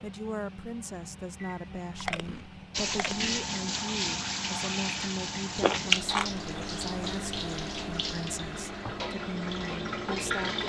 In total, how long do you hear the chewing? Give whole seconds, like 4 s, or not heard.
3 s.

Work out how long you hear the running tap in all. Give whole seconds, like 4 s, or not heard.
8 s.